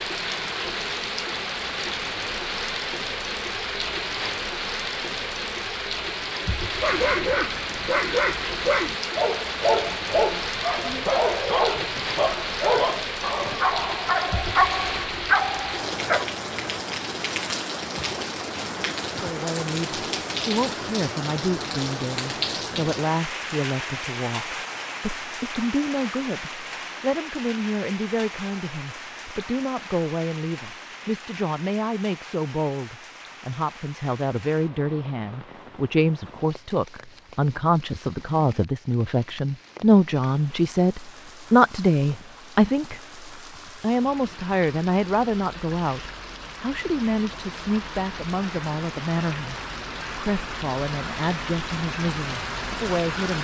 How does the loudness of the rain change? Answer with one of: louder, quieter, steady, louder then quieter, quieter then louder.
quieter then louder.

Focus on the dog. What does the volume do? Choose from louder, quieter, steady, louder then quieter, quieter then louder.
steady.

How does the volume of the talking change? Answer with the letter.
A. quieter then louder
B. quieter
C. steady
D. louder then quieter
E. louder
D.